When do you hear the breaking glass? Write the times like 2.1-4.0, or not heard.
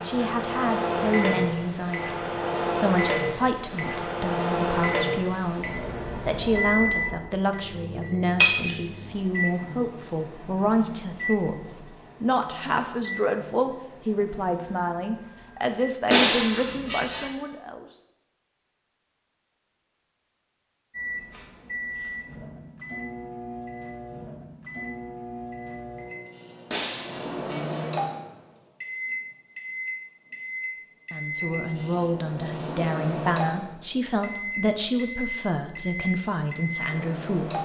8.3-8.8, 16.1-17.2, 26.7-27.9.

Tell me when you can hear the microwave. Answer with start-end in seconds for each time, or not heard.
0.0-15.9, 20.9-37.6.